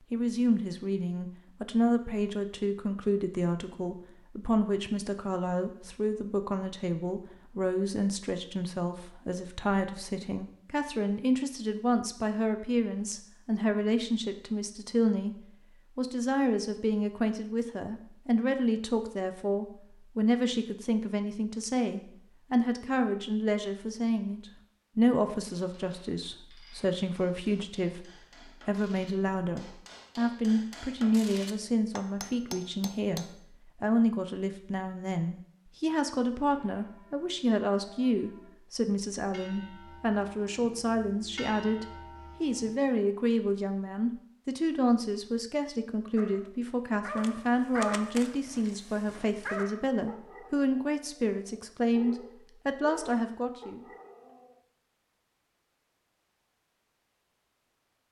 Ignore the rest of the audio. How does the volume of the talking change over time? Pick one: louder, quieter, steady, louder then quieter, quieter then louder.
steady.